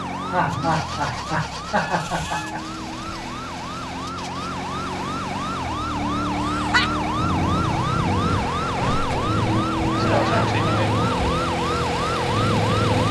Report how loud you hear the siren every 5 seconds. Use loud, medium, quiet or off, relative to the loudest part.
medium, loud, loud.